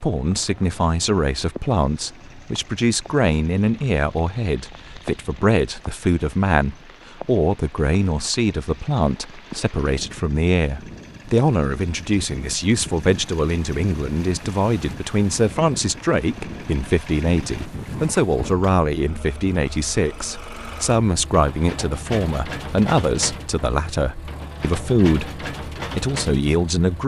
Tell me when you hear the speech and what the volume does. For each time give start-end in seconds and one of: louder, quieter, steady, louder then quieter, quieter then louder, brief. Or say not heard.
0.0-27.0 steady.